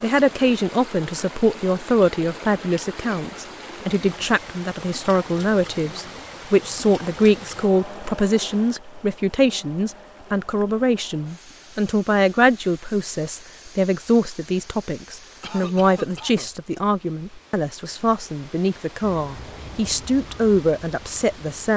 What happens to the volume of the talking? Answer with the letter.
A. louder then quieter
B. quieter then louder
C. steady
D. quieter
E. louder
C.